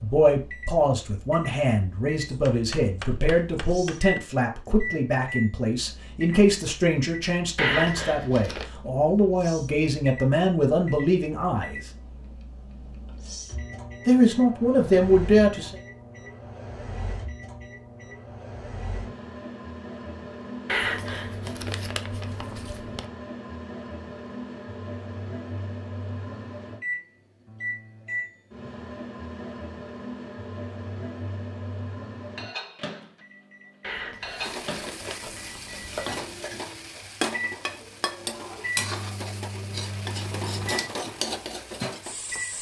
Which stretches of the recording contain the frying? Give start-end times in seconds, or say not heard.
34.2-42.5.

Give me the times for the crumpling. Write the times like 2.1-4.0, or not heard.
7.5-8.7, 20.6-23.0, 33.8-35.9.